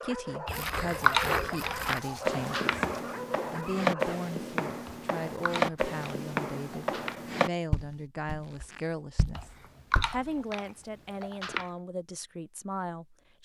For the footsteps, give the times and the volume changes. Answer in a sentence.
The footsteps can be heard from 0.5 to 10.2 s, getting quieter.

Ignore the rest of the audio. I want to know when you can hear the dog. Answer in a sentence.
The dog can be heard from 0.0 to 4.2 s.